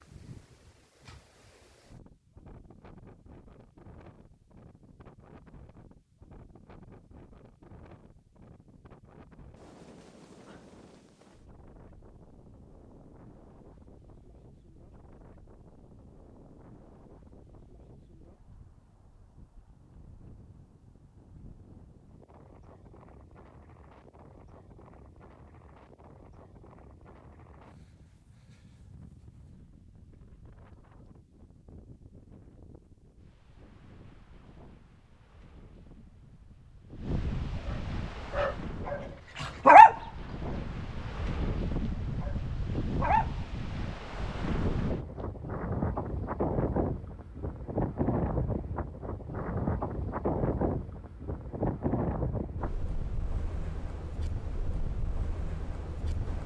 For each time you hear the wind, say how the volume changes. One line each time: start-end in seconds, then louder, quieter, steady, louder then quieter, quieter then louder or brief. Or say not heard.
0.0-56.4 louder.